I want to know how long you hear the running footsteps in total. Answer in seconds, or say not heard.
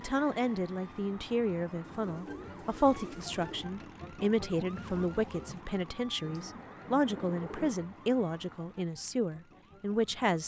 not heard.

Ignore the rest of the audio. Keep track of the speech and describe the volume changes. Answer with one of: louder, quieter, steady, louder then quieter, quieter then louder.
steady.